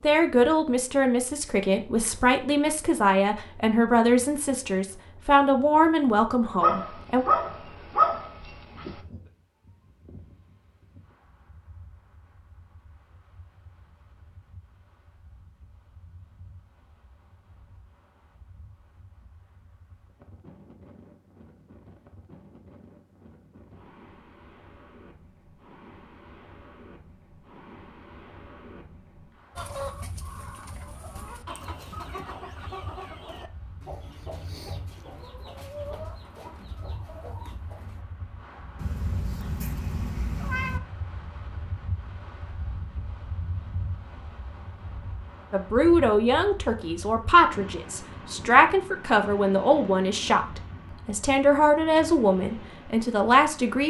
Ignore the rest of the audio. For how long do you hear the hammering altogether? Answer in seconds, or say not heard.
not heard.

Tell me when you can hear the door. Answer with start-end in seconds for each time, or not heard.
not heard.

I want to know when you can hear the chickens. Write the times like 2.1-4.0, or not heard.
29.6-38.0.